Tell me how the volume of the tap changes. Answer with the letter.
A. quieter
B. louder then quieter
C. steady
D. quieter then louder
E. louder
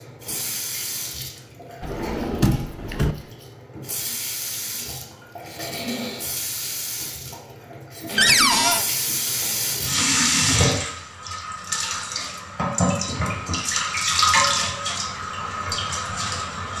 E.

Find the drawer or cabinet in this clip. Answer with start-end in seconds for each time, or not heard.
1.8-3.1, 8.2-8.8, 12.9-13.6.